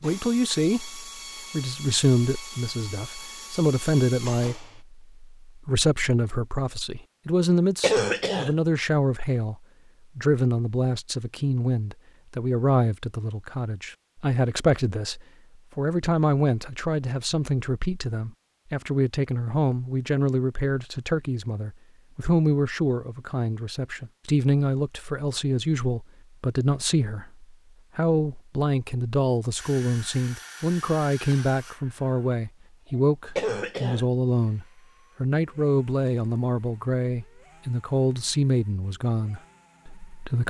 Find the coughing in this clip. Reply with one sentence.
You can hear the coughing from 7.8 to 8.5 s and from 33.4 to 34.0 s.